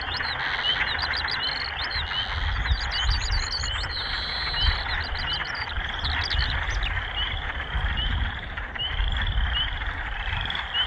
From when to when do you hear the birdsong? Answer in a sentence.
The birdsong can be heard from 0.0 to 7.0 s.